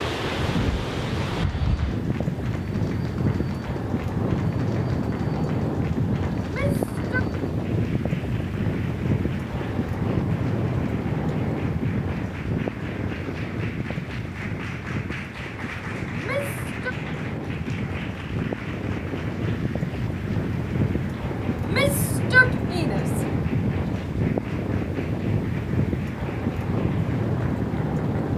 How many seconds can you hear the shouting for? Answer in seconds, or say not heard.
3 s.